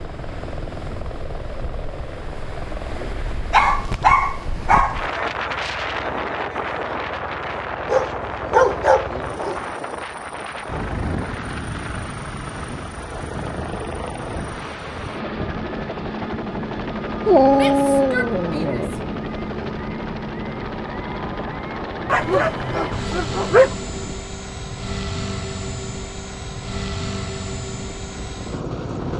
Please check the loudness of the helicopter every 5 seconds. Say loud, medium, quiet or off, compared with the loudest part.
medium, medium, loud, loud, loud, loud.